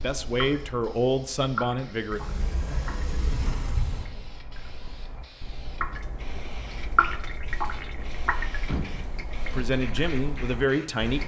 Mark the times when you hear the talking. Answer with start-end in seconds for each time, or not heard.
0.0-2.2, 9.5-11.2.